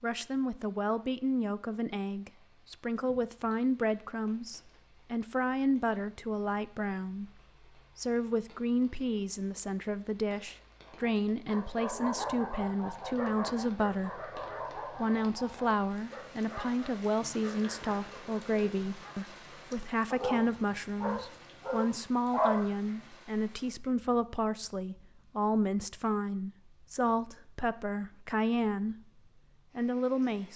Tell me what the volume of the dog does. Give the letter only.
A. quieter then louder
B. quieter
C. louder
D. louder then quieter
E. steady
A.